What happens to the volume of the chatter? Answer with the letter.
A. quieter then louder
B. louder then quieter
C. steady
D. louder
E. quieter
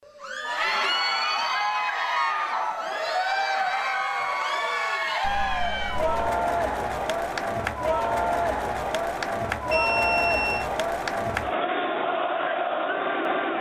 C.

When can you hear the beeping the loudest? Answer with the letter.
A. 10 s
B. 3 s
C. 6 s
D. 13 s
A.